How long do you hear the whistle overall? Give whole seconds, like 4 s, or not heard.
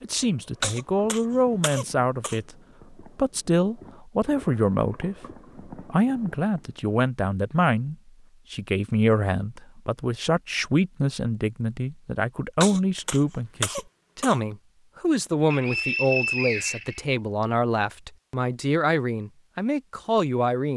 2 s.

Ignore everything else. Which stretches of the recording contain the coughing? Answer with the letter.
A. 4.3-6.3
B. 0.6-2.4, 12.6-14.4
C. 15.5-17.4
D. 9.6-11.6
B.